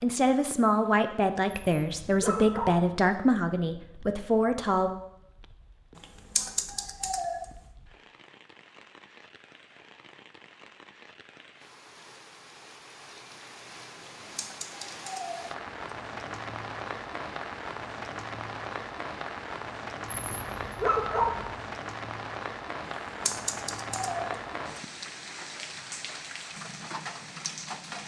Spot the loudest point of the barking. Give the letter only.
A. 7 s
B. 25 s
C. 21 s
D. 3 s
C.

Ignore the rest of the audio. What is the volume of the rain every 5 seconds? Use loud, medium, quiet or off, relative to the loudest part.
quiet, quiet, medium, loud, loud, loud.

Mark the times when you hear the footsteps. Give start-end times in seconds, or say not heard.
not heard.